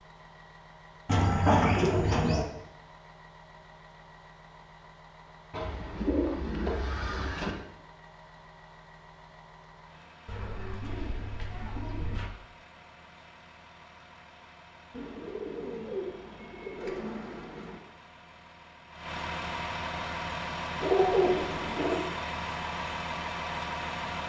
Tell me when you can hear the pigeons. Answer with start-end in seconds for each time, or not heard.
1.1-2.5, 5.5-7.5, 10.2-12.3, 14.9-17.8, 20.8-22.0.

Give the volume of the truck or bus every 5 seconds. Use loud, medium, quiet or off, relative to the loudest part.
quiet, quiet, quiet, medium, loud.